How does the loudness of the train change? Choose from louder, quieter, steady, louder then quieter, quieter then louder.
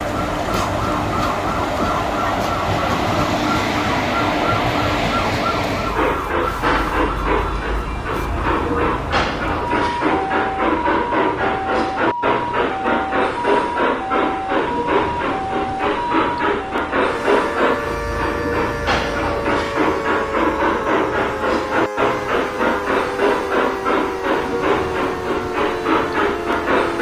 steady.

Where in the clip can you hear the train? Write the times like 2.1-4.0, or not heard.
0.0-26.9.